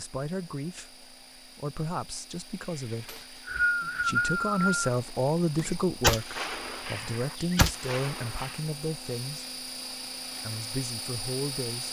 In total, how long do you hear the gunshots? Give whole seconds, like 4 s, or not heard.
3 s.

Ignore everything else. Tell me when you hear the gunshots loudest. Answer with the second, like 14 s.
6 s.